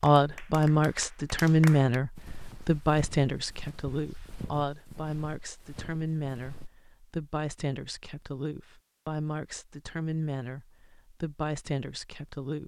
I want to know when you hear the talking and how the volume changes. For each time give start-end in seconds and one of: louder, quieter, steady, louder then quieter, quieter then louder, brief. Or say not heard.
0.0-12.6 quieter.